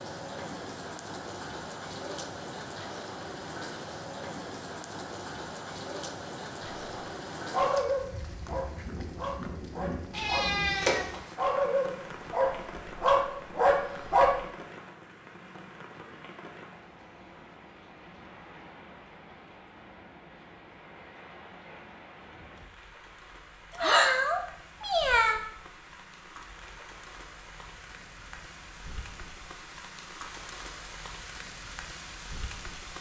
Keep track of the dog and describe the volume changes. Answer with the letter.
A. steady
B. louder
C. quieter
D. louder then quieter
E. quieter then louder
E.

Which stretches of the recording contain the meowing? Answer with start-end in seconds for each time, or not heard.
10.1-11.2, 23.8-25.4.